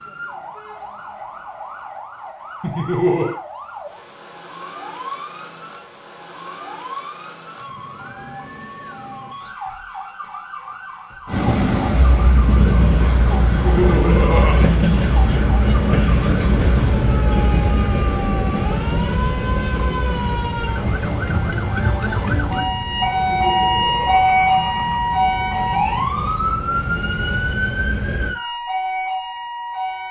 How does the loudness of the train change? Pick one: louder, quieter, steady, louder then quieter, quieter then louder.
quieter.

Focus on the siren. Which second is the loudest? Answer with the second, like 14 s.
24 s.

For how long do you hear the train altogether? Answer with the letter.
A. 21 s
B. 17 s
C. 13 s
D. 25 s
B.